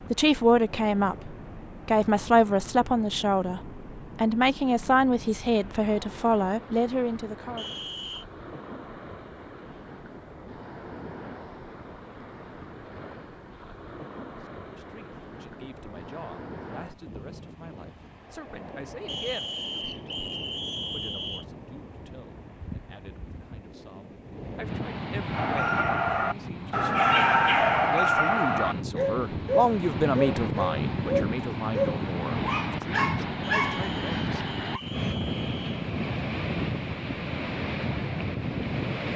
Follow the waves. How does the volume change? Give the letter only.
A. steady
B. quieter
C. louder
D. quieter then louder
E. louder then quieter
C.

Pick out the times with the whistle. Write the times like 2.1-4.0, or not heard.
7.5-8.2, 19.1-21.4, 33.5-35.9.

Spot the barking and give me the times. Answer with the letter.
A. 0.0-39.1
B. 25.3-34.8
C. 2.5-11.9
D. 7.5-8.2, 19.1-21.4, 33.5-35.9
B.